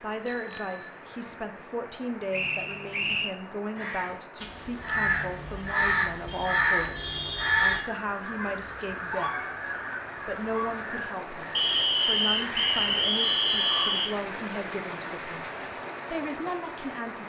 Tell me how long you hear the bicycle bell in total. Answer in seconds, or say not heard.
2 s.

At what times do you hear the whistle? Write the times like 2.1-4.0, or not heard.
2.3-3.4, 11.6-14.1.